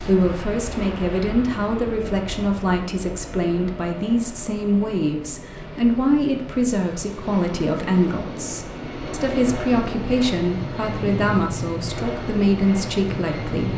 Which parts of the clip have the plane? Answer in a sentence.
The plane can be heard from 0.0 to 13.7 s.